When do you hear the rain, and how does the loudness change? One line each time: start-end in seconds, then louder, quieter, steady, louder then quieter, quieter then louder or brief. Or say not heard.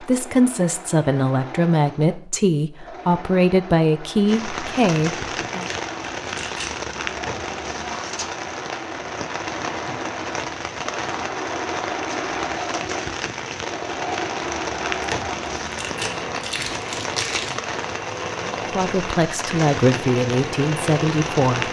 4.2-21.6 steady.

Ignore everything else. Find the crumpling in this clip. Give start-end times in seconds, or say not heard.
5.6-6.7, 15.0-17.6.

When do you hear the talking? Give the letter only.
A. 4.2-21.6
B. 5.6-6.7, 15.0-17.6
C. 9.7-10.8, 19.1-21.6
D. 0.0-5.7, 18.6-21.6
D.